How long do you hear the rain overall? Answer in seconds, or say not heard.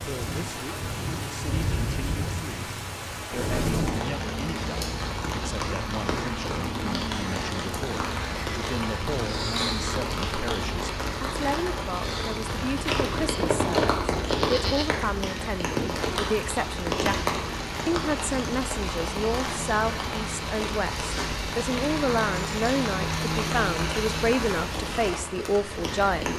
26 s.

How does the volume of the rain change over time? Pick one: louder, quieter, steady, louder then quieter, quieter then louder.
steady.